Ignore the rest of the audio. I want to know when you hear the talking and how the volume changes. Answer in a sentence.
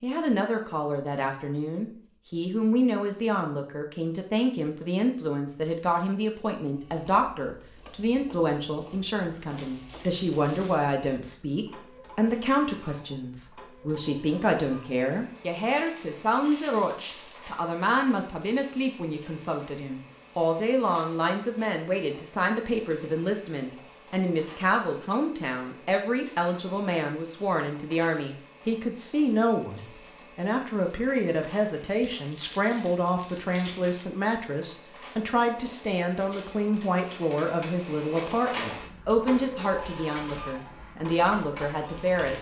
You can hear the talking from 0.0 to 42.3 s, at a steady volume.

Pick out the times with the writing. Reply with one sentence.
The writing can't be heard in this clip.